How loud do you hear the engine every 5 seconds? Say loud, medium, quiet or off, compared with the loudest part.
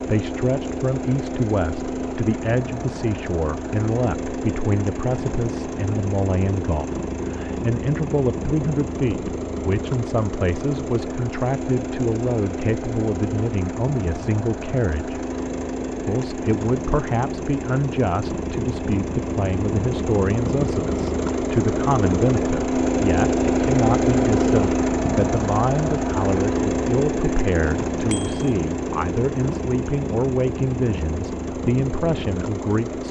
medium, medium, medium, medium, loud, loud, medium.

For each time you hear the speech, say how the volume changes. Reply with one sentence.
The speech can be heard from 0.0 to 15.2 s, at a steady volume; and from 16.0 to 33.0 s, at a steady volume.